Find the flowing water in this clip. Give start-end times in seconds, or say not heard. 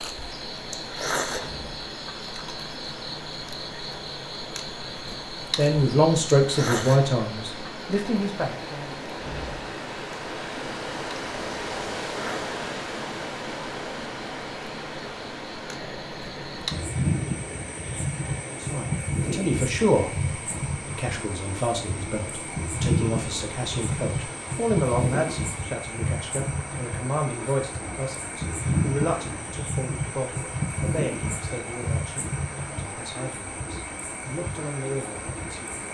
0.0-35.8.